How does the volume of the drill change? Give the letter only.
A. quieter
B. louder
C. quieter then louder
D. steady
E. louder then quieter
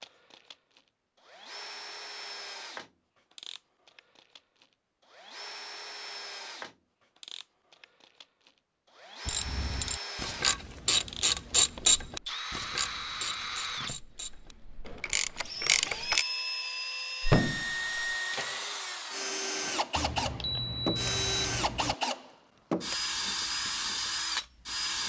B.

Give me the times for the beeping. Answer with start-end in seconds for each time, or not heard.
19.9-21.9.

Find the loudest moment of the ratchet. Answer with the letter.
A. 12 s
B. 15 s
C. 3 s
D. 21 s
A.